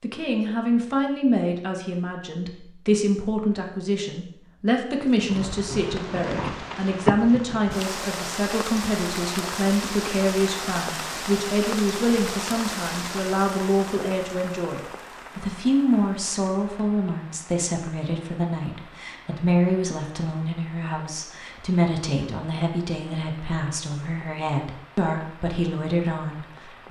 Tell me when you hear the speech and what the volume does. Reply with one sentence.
You can hear the speech from 0.0 to 26.8 s, at a steady volume.